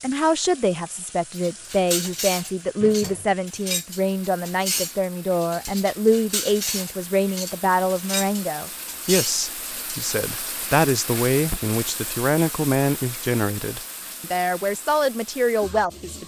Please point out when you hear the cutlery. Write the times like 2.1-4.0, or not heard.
1.3-10.2.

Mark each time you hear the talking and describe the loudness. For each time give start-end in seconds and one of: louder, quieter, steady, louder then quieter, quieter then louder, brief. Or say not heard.
0.0-16.2 steady.